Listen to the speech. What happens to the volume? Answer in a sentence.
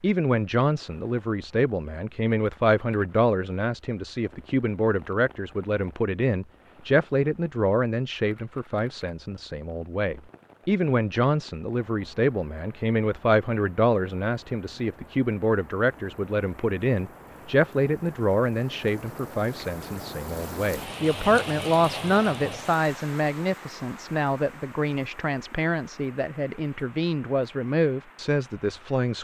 The loudness of the speech stays about the same.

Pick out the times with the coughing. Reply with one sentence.
The coughing can't be heard in this clip.